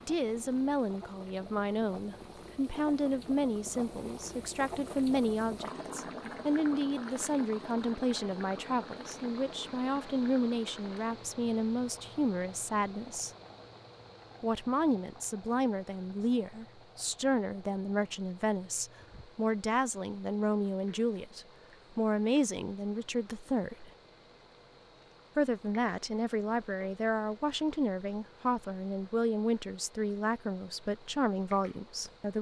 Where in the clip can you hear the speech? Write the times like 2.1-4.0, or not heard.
0.1-13.3, 14.4-23.9, 25.4-32.3.